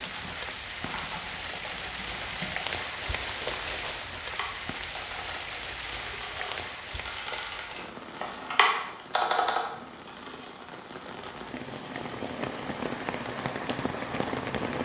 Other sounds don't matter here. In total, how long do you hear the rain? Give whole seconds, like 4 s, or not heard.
15 s.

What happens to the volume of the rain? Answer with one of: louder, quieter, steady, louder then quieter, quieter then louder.
quieter then louder.